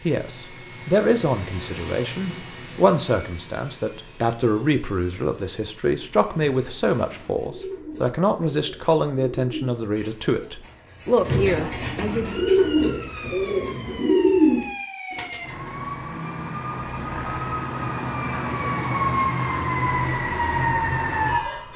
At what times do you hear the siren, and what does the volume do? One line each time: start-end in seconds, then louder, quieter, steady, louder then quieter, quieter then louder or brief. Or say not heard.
12.2-21.7 louder.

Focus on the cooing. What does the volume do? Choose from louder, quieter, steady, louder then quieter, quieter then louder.
louder.